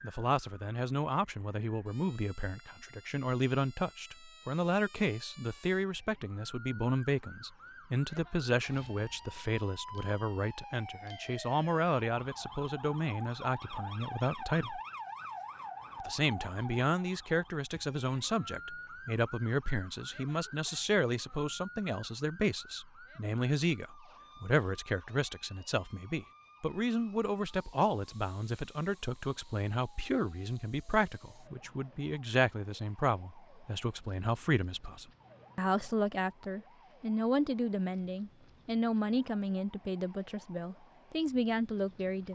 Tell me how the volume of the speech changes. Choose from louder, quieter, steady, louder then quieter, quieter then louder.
steady.